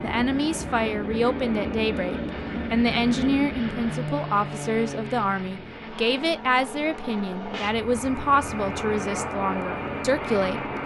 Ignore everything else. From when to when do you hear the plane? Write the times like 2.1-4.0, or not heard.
0.0-10.8.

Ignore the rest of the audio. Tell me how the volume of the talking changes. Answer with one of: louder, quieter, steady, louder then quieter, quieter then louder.
steady.